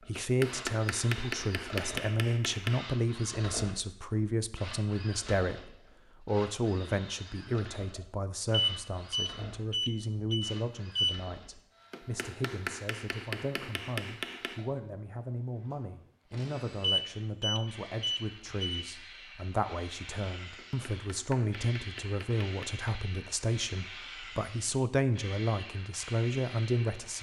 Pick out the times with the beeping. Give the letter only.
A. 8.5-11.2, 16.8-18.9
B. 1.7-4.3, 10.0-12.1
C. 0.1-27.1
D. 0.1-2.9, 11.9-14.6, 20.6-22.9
A.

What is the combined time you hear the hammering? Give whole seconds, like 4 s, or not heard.
8 s.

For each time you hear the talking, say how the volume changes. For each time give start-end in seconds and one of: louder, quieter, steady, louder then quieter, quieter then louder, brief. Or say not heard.
0.1-27.1 quieter then louder.